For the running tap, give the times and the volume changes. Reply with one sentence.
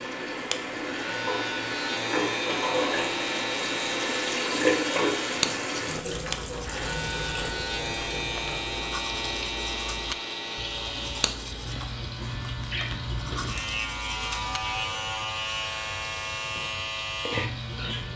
The running tap can be heard from 0.0 to 18.1 s, getting quieter.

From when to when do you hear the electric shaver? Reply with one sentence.
You can hear the electric shaver from 0.0 to 18.1 s.